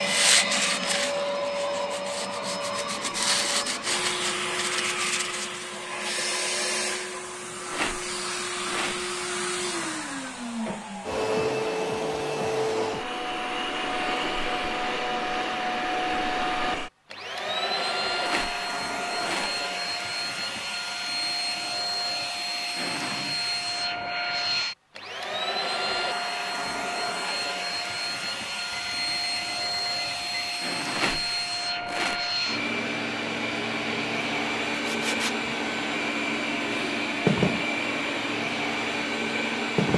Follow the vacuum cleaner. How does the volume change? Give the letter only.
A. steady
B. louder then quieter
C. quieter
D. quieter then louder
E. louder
A.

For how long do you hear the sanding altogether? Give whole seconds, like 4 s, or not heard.
8 s.